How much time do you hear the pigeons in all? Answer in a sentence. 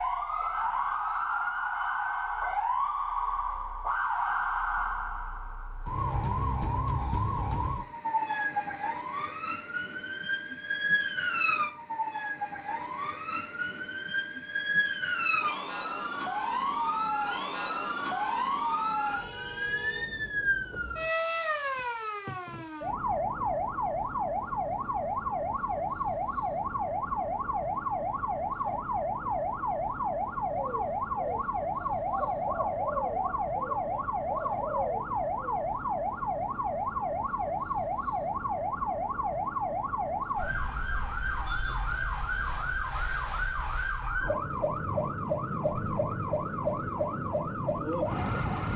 You can hear the pigeons for 5 seconds altogether.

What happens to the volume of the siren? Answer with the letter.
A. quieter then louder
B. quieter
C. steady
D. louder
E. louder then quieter
C.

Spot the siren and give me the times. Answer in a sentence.
The siren can be heard from 0.0 to 48.7 s.